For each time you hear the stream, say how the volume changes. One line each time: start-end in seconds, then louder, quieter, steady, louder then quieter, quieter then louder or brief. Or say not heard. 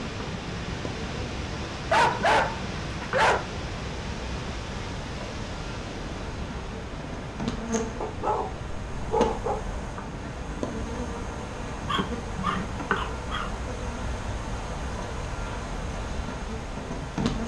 0.0-17.4 quieter.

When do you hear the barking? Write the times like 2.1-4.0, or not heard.
1.9-3.5, 8.0-9.6, 11.8-13.6.